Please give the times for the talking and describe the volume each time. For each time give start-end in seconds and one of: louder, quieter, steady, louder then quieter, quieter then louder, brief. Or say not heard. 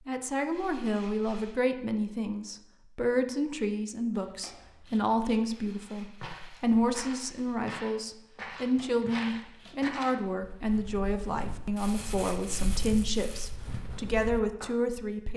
0.1-15.3 steady.